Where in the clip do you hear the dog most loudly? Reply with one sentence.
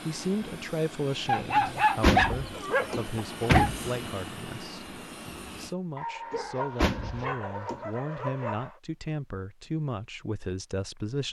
The volume of the dog peaks at 2 seconds.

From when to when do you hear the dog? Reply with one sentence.
The dog can be heard from 1.2 to 3.7 s and from 6.0 to 8.8 s.